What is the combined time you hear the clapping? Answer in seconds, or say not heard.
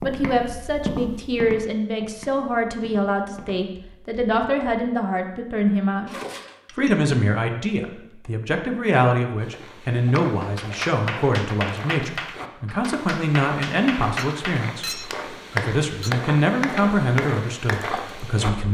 8 s.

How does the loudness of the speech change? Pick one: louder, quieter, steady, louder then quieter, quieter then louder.
steady.